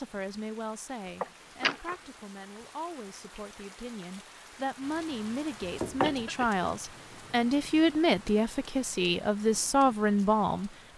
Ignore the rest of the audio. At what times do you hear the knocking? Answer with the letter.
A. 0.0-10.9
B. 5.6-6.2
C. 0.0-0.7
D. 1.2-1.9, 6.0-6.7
B.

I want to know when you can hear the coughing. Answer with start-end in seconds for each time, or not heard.
1.2-1.9, 6.0-6.7.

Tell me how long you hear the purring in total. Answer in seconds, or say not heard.
not heard.